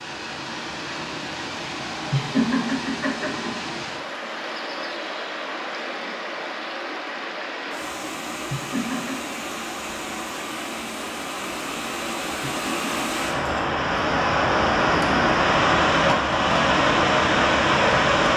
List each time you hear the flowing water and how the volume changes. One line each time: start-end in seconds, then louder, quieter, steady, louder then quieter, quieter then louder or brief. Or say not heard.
0.0-18.3 louder.